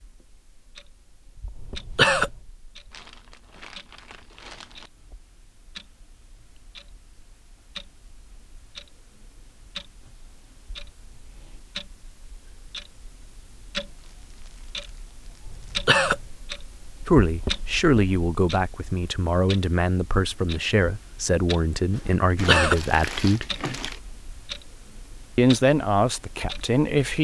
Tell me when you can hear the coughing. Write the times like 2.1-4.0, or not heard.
1.6-2.3, 15.4-16.2, 22.3-22.9.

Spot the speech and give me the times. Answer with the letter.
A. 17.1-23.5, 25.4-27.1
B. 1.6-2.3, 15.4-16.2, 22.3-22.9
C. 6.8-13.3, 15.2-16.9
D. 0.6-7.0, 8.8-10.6
A.